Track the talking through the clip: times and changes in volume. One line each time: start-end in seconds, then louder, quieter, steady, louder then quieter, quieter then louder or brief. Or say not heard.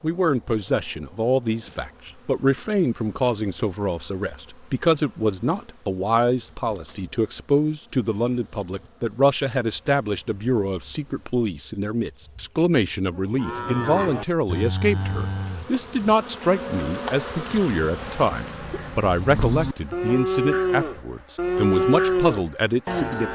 0.0-23.3 steady.